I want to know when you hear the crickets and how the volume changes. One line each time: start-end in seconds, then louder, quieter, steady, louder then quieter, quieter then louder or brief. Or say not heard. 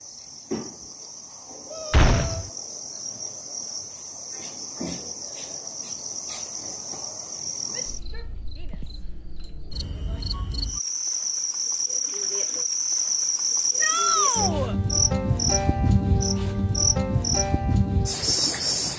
0.0-18.9 louder.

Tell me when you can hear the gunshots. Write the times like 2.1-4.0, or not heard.
1.9-2.5.